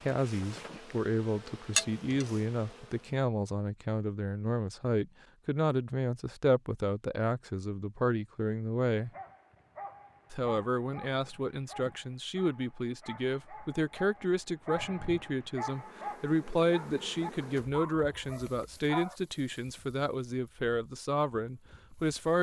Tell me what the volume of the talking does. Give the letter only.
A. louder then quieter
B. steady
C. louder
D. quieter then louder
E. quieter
B.